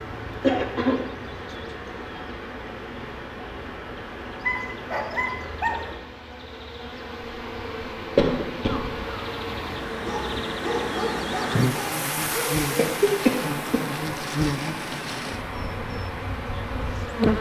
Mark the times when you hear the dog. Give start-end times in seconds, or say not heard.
4.4-5.8, 10.1-12.7.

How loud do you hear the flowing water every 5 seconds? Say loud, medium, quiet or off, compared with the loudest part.
medium, medium, loud, medium.